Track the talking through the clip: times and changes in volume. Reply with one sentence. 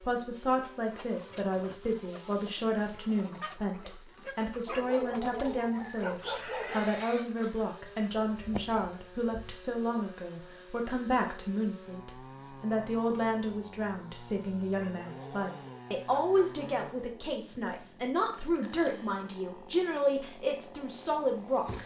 The talking can be heard from 0.0 to 21.8 s, at a steady volume.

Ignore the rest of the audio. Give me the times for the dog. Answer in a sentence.
You can hear the dog from 4.7 to 7.0 s and from 14.8 to 16.6 s.